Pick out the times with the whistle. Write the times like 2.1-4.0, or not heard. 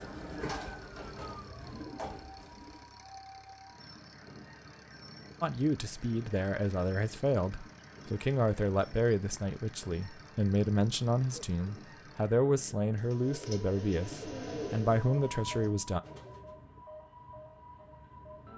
not heard.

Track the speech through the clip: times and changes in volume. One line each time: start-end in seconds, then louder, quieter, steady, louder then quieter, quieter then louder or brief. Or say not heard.
5.4-16.0 steady.